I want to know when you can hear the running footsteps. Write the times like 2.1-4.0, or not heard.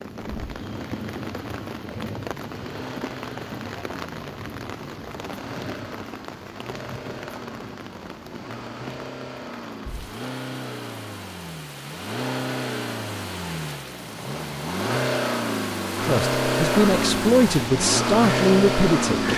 not heard.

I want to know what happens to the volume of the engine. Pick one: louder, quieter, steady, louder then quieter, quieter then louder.
louder.